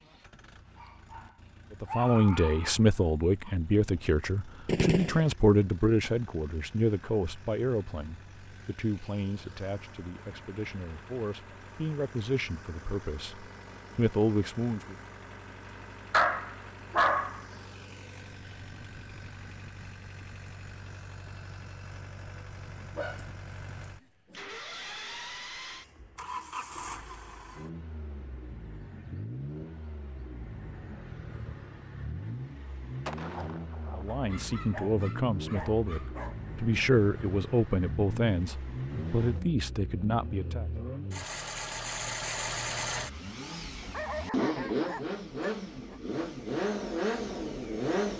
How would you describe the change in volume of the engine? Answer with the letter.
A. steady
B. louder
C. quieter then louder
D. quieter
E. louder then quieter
B.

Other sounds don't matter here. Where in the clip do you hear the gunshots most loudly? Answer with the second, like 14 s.
5 s.